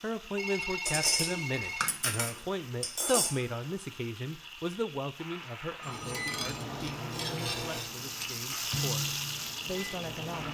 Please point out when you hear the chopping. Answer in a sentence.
The chopping can't be heard in this clip.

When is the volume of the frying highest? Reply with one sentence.
The loudest moment of the frying is at 9 seconds.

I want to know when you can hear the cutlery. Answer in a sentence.
You can hear the cutlery from 0.8 to 3.5 s and from 6.0 to 8.4 s.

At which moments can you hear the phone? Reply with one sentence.
The phone can be heard from 0.3 to 1.9 s and from 5.8 to 6.7 s.